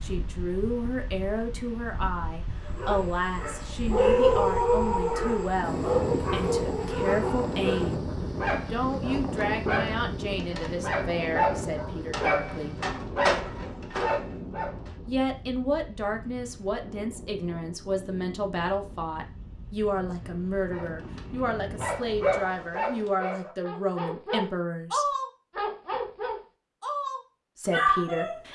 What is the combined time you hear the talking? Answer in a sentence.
The talking can be heard for 23 seconds in total.